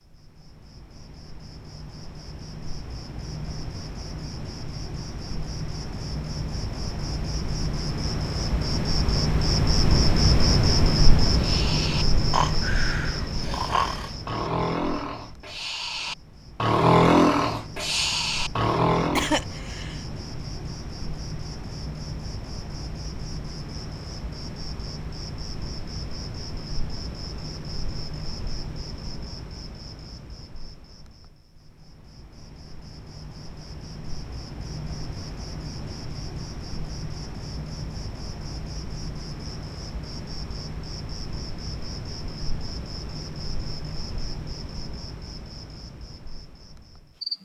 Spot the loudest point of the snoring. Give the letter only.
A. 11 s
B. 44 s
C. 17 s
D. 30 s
C.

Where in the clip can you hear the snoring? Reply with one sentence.
The snoring can be heard from 11.3 to 19.4 s.